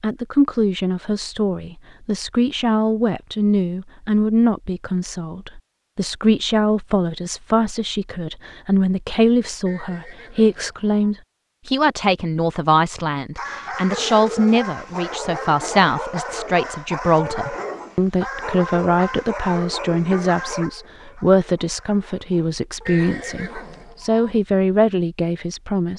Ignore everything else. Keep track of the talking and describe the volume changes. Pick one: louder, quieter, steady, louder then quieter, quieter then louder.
steady.